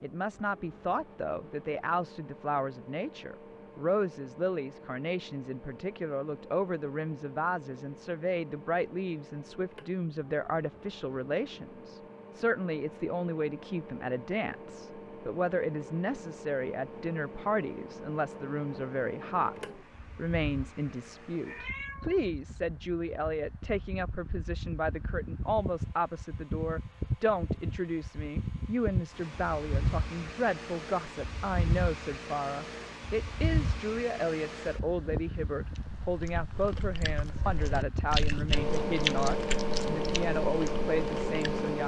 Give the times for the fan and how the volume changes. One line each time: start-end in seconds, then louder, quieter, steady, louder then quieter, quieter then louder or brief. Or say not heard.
0.0-41.8 louder.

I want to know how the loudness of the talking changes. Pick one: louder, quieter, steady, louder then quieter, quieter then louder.
steady.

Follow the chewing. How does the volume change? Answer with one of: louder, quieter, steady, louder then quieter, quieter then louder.
louder then quieter.